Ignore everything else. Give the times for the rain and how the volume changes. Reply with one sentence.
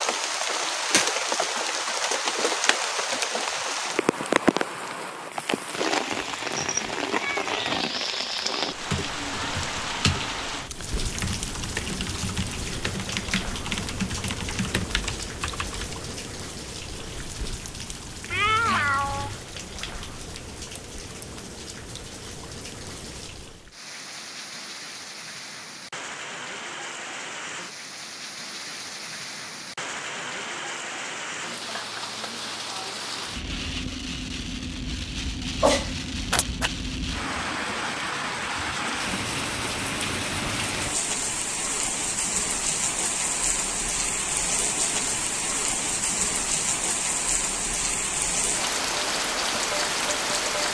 The rain can be heard from 0.0 to 50.6 s, getting quieter then louder.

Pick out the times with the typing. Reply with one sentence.
You can hear the typing from 8.7 to 15.9 s.